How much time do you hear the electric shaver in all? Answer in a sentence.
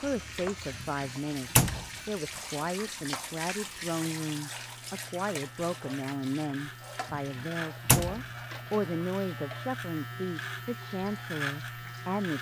You can hear the electric shaver for 12 seconds altogether.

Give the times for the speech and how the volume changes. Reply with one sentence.
You can hear the speech from 0.0 to 12.3 s, at a steady volume.